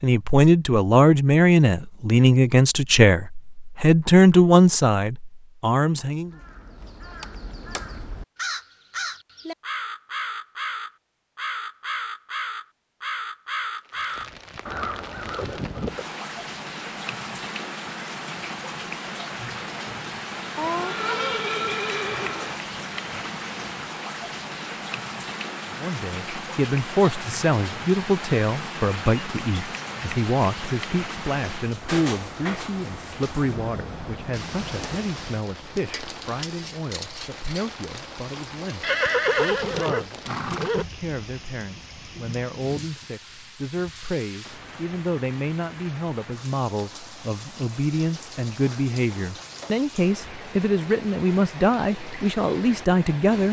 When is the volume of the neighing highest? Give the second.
39 s.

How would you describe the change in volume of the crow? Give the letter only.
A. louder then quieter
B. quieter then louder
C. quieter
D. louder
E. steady
D.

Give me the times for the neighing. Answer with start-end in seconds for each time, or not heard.
20.6-22.6, 38.8-40.9.